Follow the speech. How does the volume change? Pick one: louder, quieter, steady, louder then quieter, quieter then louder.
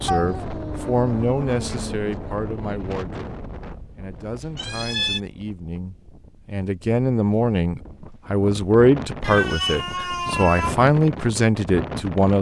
quieter then louder.